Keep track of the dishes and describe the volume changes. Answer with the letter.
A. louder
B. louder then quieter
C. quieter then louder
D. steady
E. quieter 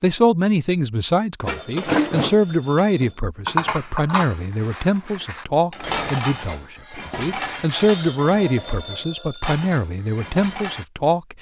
E.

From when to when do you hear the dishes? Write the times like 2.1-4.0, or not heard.
1.4-10.8.